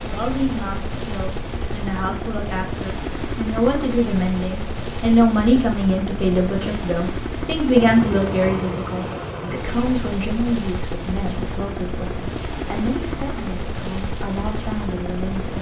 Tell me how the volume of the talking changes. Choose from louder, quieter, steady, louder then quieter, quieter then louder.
louder then quieter.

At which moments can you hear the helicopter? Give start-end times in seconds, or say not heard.
0.0-15.5.